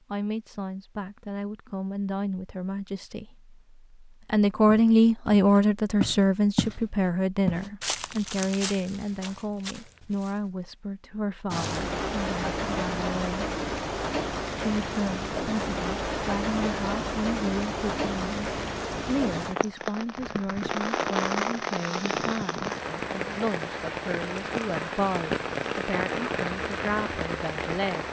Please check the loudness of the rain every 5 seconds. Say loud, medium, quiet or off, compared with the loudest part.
off, off, loud, loud, loud, loud.